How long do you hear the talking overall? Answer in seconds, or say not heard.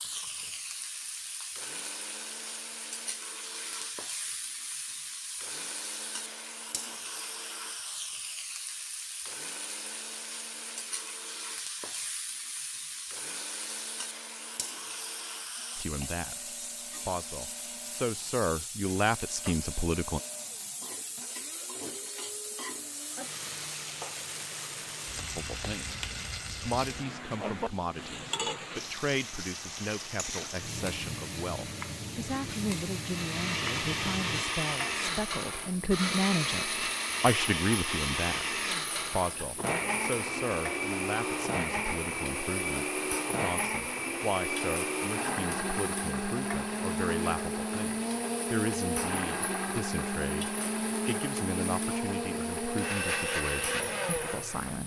34 s.